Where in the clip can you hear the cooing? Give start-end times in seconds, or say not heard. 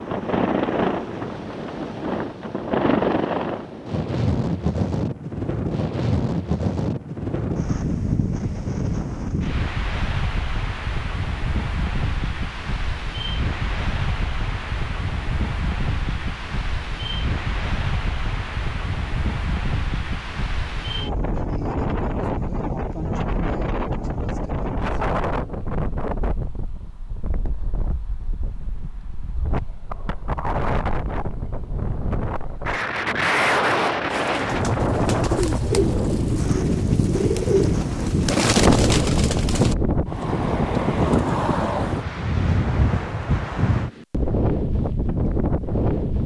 34.1-39.8.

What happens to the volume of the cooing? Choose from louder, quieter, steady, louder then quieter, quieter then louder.
louder.